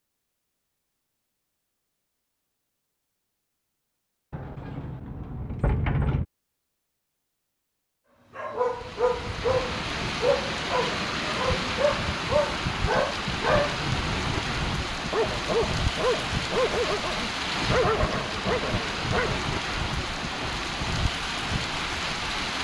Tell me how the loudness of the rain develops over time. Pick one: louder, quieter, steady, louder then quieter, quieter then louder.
steady.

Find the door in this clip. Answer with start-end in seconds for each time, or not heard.
4.3-6.2, 13.4-14.8.